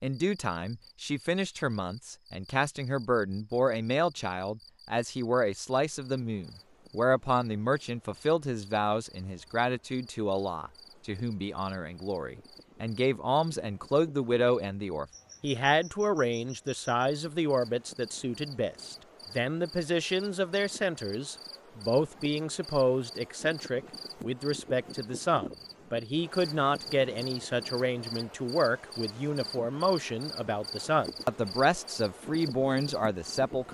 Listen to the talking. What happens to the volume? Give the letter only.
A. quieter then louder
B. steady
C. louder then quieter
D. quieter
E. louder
B.